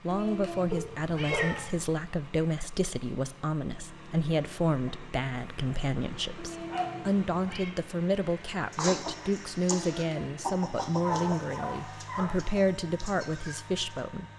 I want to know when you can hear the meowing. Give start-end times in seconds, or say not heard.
0.1-1.9, 6.3-7.8, 9.8-10.4.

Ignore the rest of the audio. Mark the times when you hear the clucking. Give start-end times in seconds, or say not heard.
8.7-14.0.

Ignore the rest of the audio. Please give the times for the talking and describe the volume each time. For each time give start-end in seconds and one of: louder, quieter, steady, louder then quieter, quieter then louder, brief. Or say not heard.
0.0-14.2 steady.